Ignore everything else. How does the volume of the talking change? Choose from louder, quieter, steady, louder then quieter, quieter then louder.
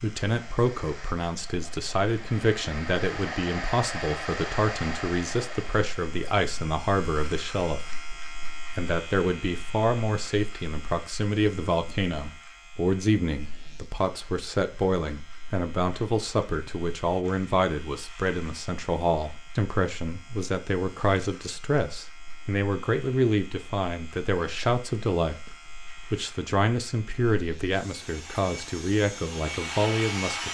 steady.